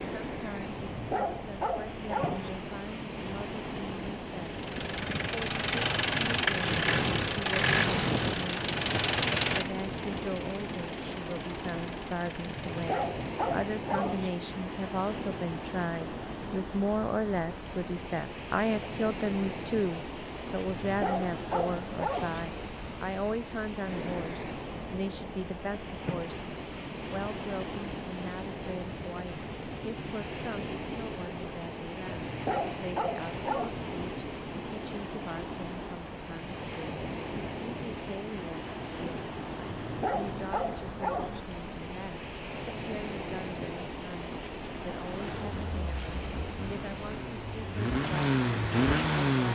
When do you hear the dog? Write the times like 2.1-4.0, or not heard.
0.8-2.5, 12.7-14.3, 20.6-22.4, 32.1-33.7, 39.6-41.4.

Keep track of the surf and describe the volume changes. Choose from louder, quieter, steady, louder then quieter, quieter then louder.
steady.